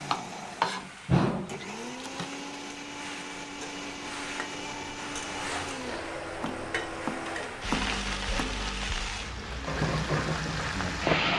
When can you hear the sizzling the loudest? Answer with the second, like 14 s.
11 s.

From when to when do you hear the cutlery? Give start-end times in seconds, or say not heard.
not heard.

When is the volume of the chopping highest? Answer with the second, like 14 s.
1 s.